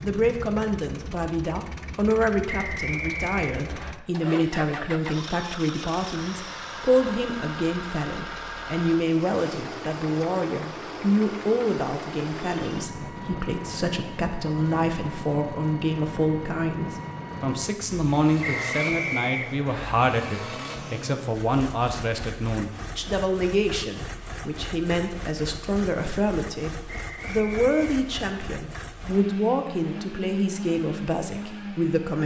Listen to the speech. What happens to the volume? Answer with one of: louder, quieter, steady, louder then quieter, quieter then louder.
steady.